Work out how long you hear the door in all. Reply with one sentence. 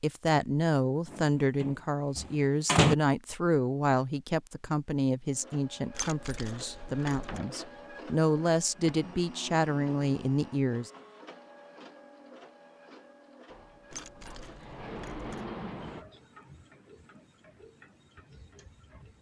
You can hear the door for 6 seconds altogether.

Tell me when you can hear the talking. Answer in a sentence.
The talking can be heard from 0.0 to 10.9 s.